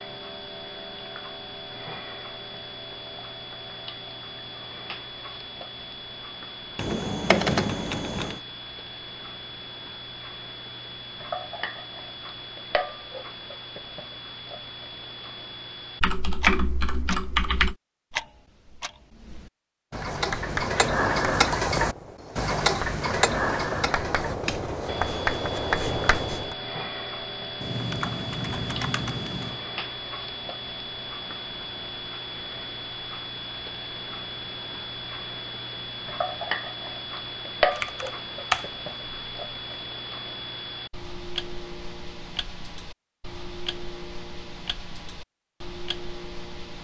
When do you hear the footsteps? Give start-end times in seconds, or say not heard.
not heard.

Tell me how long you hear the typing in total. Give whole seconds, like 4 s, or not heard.
7 s.